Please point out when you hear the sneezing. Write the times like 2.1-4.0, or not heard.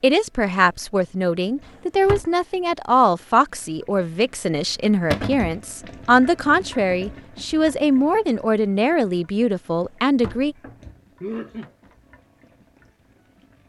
11.2-11.7.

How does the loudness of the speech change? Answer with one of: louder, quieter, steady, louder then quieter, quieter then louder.
steady.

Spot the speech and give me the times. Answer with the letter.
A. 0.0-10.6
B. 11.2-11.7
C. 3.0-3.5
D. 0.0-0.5
A.